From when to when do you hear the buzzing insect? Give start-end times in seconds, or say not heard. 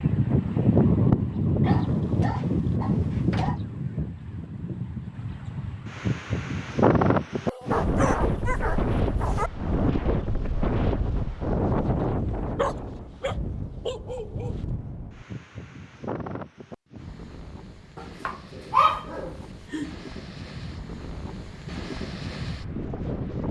not heard.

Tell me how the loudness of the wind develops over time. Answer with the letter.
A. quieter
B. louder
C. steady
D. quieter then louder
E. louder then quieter
A.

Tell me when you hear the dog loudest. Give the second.
19 s.